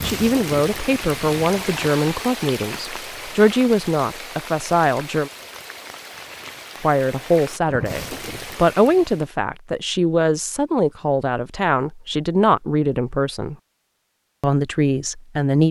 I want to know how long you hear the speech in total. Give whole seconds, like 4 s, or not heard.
13 s.